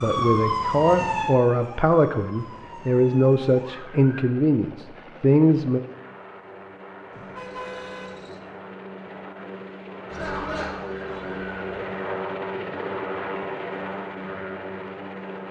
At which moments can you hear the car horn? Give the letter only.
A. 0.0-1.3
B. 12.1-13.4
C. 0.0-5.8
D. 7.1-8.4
D.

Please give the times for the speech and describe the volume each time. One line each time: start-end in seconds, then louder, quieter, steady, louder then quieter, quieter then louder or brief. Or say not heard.
0.0-5.8 steady.